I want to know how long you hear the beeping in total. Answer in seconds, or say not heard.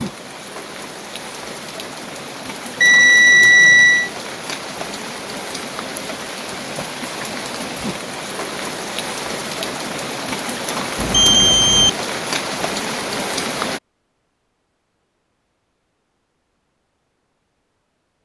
2 s.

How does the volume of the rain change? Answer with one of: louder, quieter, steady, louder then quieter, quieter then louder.
louder.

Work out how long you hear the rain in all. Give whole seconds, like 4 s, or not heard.
14 s.